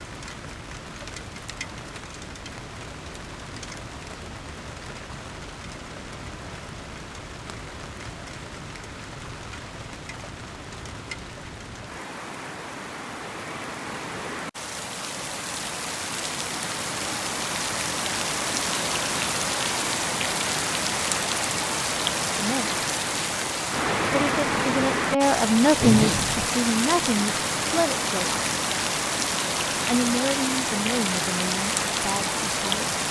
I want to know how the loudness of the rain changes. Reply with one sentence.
The loudness of the rain goes up.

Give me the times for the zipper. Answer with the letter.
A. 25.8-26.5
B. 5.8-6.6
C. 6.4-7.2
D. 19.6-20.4
A.